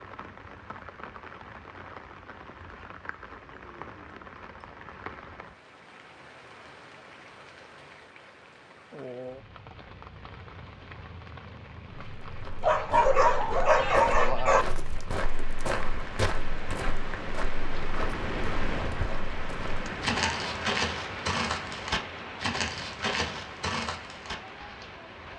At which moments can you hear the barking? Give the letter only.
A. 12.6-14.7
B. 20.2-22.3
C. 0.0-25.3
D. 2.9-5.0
A.